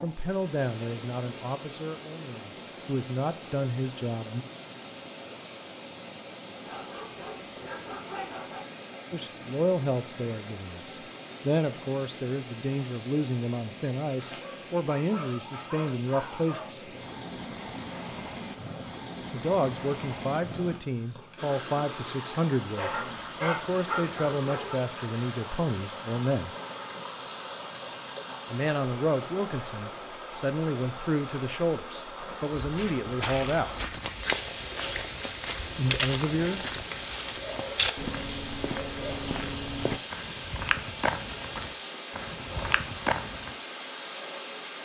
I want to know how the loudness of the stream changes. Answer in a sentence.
The volume of the stream stays about the same.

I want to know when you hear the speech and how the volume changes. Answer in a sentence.
You can hear the speech from 0.0 to 4.5 s, getting quieter then louder; from 9.1 to 16.9 s, at a steady volume; from 19.3 to 26.5 s, at a steady volume; from 28.5 to 33.7 s, at a steady volume; and briefly from 35.8 to 36.6 s.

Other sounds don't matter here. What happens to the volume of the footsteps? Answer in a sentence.
The volume of the footsteps stays about the same.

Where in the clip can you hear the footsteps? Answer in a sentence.
The footsteps can be heard from 32.5 to 43.5 s.